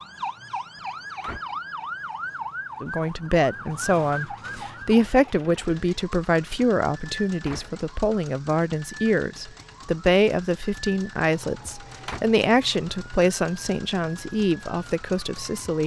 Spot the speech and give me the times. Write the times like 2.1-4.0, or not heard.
2.8-15.8.